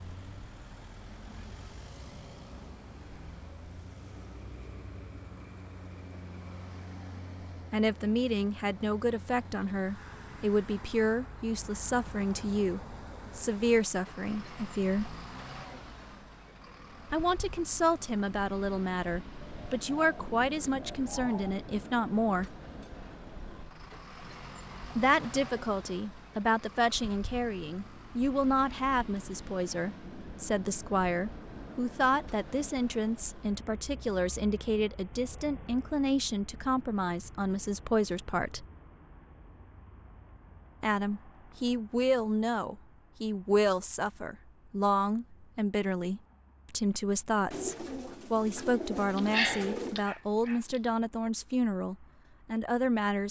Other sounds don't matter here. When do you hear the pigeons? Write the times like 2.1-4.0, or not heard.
19.4-21.6, 47.5-50.0.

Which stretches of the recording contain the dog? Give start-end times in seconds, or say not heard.
49.1-50.8.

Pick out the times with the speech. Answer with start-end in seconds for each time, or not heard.
7.7-15.2, 17.1-22.6, 24.9-38.6, 40.8-53.2.